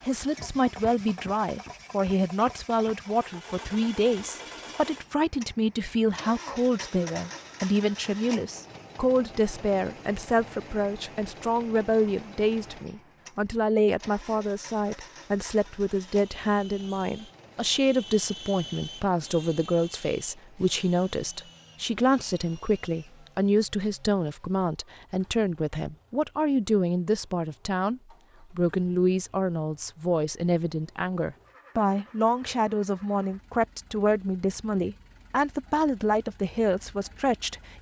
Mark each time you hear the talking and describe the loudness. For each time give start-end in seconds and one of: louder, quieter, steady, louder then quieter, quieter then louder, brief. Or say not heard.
0.0-37.7 steady.